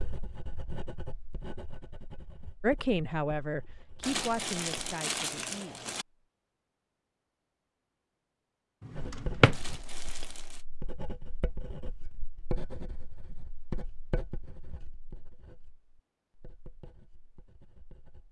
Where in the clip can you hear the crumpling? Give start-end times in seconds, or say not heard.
4.0-6.0, 9.5-10.7.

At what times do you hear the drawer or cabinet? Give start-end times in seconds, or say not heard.
8.8-9.6.